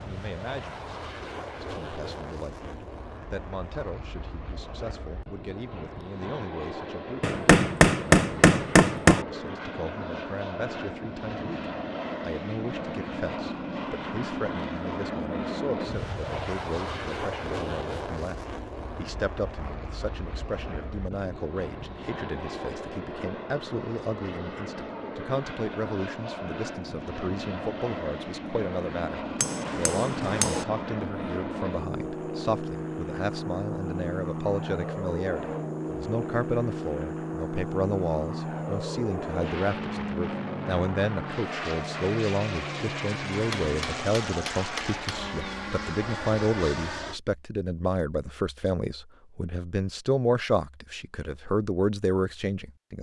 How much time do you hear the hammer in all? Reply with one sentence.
The hammer can be heard for 5 seconds in total.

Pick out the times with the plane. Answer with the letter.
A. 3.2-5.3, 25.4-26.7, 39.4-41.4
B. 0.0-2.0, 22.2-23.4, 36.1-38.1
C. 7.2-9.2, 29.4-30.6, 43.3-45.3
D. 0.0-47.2
D.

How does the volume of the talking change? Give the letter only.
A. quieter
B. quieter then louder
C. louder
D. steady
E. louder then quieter
C.